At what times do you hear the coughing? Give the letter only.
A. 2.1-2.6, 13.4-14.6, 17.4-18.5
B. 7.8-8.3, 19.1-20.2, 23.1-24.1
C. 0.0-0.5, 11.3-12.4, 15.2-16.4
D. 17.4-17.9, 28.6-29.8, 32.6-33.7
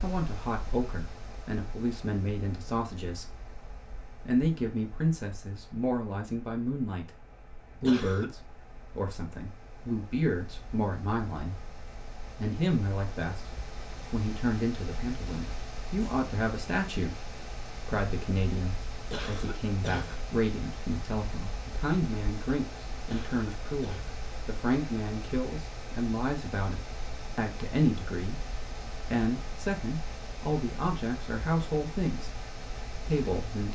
B.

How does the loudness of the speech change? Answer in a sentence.
The loudness of the speech stays about the same.